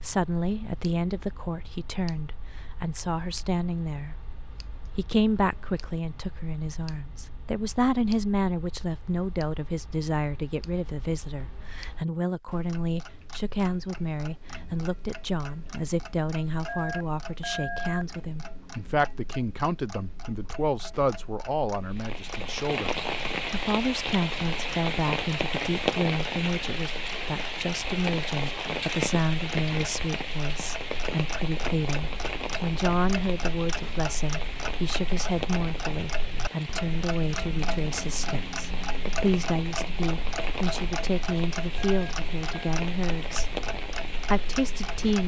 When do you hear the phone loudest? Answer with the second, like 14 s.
18 s.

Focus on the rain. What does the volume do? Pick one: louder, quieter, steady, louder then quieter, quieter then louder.
quieter.